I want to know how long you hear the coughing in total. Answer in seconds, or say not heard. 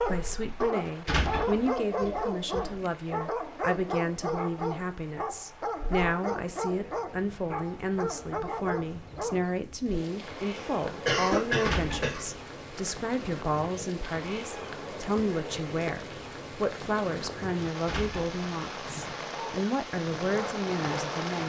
2 s.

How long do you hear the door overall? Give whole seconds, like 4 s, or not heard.
3 s.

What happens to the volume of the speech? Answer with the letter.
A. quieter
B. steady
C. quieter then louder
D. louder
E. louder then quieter
B.